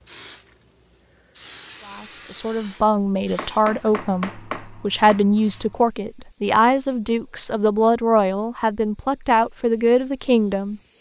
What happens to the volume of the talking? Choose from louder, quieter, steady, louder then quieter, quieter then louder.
steady.